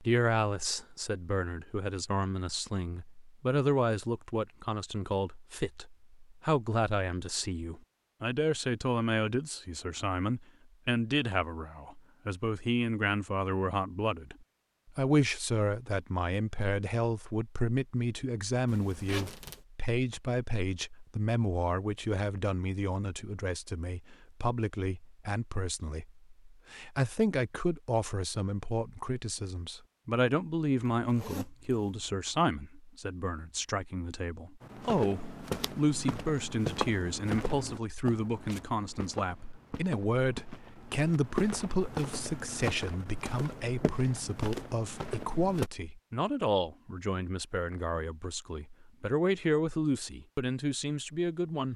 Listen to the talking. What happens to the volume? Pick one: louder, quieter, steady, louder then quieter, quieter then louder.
steady.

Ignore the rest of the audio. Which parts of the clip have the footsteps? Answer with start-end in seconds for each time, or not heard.
34.6-45.7.